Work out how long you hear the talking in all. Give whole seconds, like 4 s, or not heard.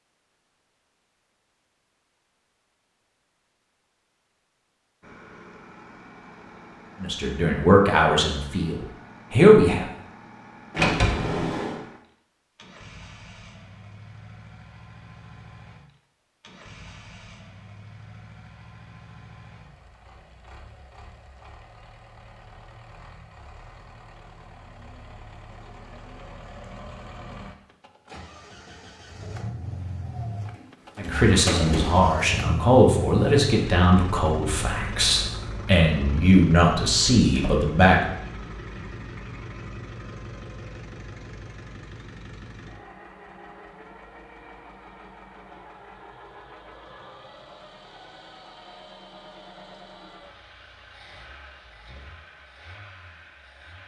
10 s.